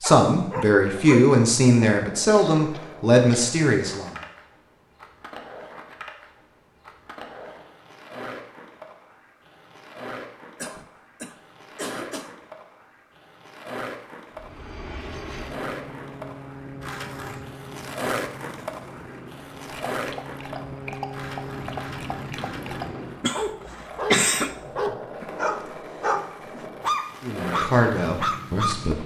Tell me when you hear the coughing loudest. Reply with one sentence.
The volume of the coughing peaks at 24 seconds.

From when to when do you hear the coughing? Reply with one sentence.
The coughing can be heard from 2.2 to 3.5 s, from 10.6 to 12.3 s and from 23.2 to 24.6 s.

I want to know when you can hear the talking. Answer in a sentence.
You can hear the talking from 0.0 to 4.2 s and from 27.2 to 29.0 s.